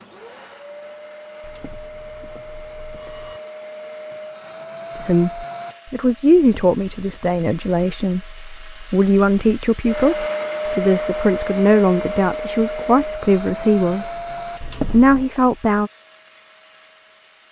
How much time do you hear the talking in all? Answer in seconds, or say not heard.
10 s.